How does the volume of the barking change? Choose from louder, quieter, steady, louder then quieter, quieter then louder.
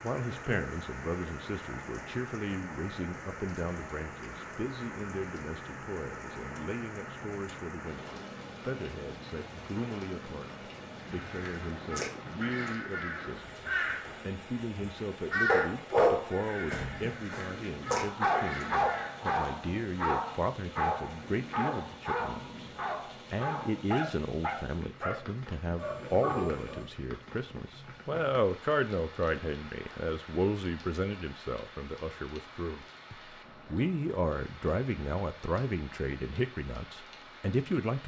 quieter.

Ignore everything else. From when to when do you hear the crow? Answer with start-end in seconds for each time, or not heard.
10.9-19.2.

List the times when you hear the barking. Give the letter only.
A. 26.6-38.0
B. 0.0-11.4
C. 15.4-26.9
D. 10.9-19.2
C.